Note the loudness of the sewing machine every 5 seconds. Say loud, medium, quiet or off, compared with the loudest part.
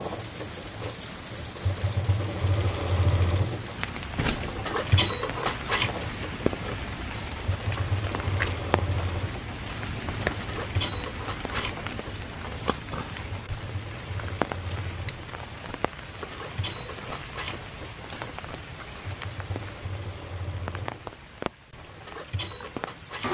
loud, loud, medium, medium, medium.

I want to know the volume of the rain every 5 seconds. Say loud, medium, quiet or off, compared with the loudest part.
loud, loud, loud, medium, medium.